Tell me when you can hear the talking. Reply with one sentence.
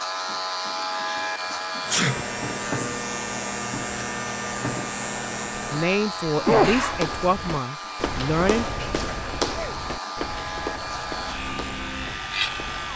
The talking can be heard from 5.7 to 8.7 s.